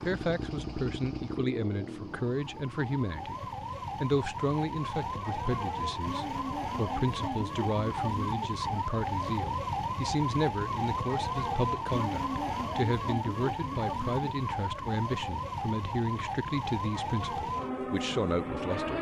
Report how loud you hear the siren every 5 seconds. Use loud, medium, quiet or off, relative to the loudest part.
medium, loud, loud, loud.